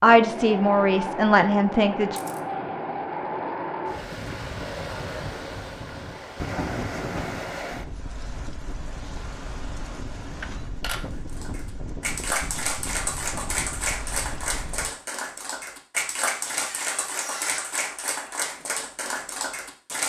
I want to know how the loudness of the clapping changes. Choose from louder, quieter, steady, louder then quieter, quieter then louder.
steady.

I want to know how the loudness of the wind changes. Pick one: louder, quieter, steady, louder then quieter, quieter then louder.
quieter.